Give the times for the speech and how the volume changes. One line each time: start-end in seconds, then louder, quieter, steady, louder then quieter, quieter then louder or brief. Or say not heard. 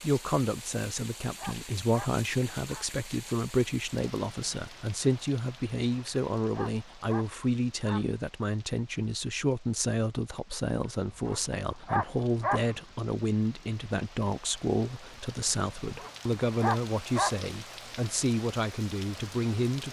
0.0-19.8 steady.